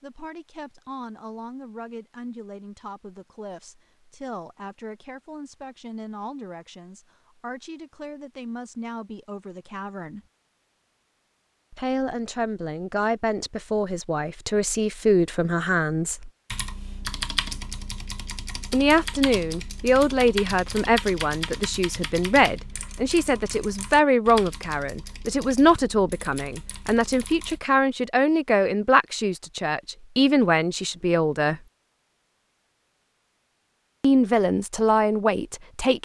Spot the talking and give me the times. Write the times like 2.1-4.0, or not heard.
0.0-10.2, 11.7-16.3, 18.7-31.6, 34.0-35.9.